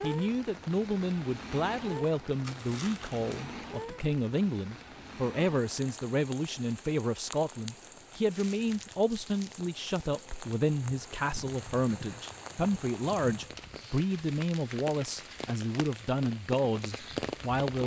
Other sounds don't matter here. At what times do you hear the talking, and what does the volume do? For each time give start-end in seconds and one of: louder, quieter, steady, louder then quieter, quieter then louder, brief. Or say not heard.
0.0-17.8 steady.